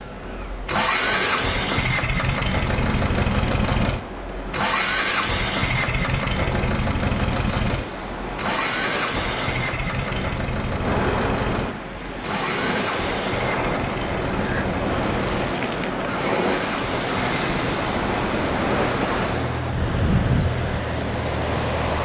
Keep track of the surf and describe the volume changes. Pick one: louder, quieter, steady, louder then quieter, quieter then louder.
louder.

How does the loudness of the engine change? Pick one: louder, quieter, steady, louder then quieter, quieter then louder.
quieter.